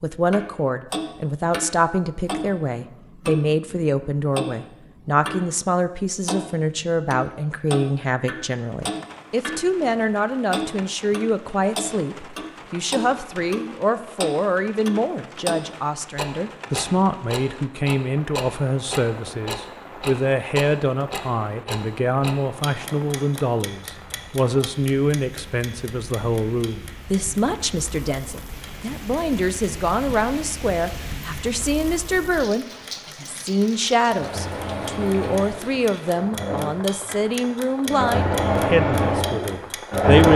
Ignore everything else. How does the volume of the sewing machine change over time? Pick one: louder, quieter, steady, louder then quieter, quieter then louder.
louder.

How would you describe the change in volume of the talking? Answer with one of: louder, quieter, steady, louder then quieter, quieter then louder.
steady.